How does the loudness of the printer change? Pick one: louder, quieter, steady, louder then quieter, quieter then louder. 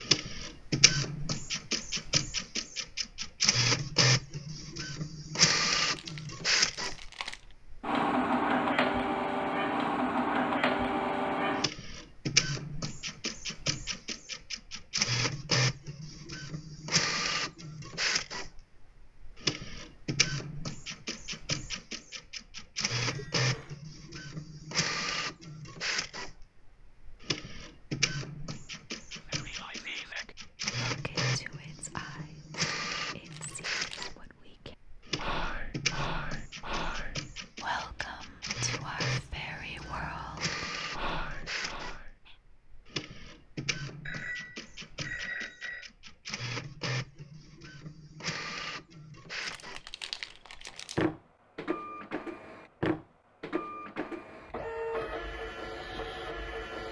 quieter.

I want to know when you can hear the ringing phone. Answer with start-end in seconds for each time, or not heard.
22.9-23.8, 44.0-45.9.